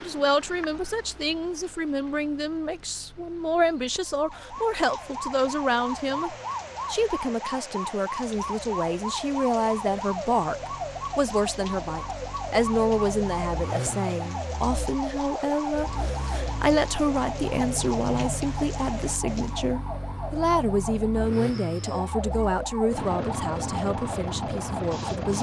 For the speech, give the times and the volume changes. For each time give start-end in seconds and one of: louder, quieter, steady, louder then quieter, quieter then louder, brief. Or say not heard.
0.0-25.3 steady.